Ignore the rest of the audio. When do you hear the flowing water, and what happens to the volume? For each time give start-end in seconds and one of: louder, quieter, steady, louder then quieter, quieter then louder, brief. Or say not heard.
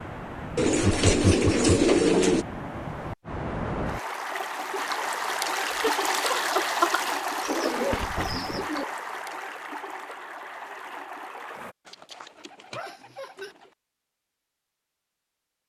0.0-11.8 louder then quieter.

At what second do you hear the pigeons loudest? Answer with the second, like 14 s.
2 s.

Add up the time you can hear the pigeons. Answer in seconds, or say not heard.
5 s.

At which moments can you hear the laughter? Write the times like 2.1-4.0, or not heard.
0.8-1.7, 5.8-7.0, 12.7-13.6.